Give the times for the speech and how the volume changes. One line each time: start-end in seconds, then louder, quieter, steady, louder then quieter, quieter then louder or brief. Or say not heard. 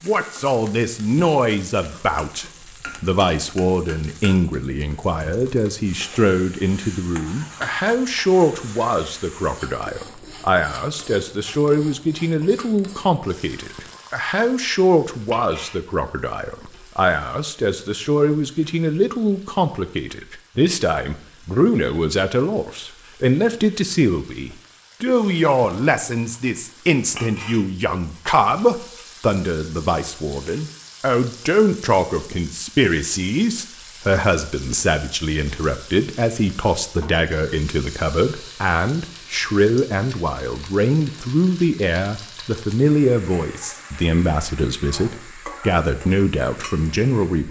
0.1-47.4 steady.